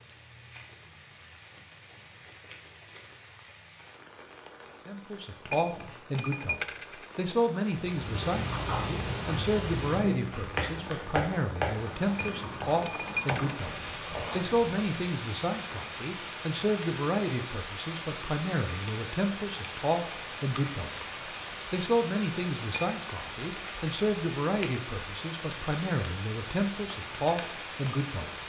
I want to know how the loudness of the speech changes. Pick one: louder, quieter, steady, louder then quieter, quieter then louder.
steady.